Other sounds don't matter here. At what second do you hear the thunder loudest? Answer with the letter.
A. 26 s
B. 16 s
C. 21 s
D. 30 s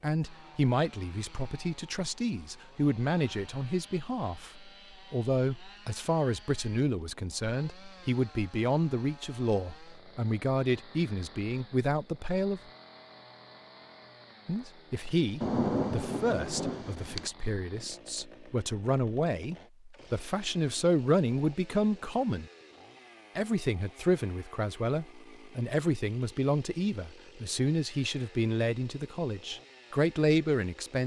B.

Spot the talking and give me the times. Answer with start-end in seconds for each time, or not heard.
0.0-12.6, 14.4-22.4, 23.4-31.0.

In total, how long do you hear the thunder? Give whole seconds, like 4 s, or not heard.
2 s.